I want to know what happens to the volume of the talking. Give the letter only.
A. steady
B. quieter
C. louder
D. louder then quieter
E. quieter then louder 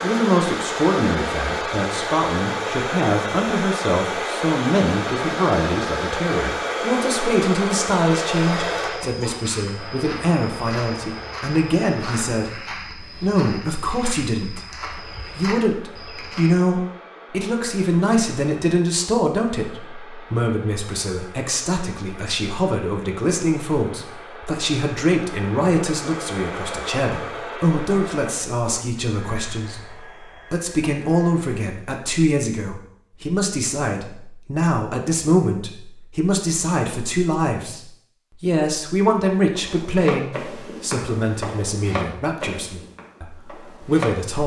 A.